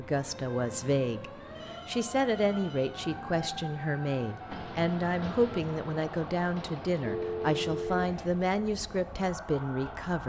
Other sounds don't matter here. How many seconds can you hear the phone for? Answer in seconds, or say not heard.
2 s.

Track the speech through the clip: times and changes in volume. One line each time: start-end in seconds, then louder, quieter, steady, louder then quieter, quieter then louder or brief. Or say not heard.
0.0-10.2 steady.